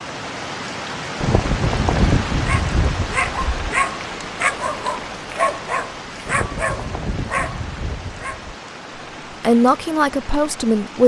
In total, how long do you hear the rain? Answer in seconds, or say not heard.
11 s.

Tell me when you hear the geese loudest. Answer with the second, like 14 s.
2 s.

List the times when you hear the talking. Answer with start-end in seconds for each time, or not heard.
9.4-11.0.